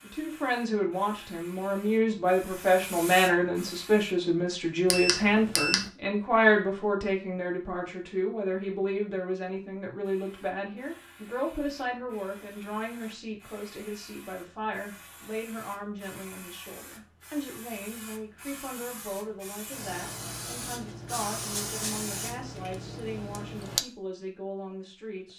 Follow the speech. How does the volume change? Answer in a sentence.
The loudness of the speech goes down.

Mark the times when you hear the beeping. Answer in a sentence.
The beeping can be heard from 4.9 to 5.8 s.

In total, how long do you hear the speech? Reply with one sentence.
You can hear the speech for 25 seconds altogether.